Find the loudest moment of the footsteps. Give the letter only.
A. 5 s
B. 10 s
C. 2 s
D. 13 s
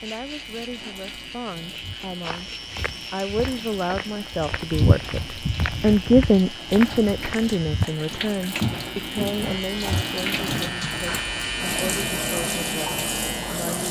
A.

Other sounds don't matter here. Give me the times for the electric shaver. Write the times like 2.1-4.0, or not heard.
0.0-13.8.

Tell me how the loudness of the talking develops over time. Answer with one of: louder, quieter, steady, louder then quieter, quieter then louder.
louder then quieter.